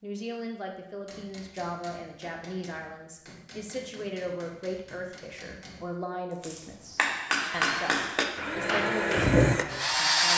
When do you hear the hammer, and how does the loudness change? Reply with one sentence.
The hammer can be heard from 1.1 to 9.3 s, getting louder.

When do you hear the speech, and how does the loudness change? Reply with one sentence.
You can hear the speech from 0.0 to 10.3 s, at a steady volume.